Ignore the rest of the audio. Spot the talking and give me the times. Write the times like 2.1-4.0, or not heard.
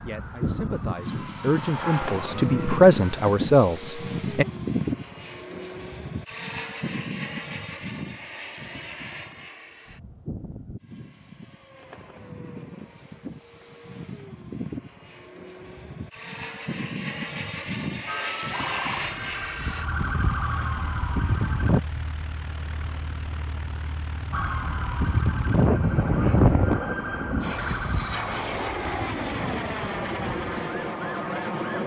0.0-4.5.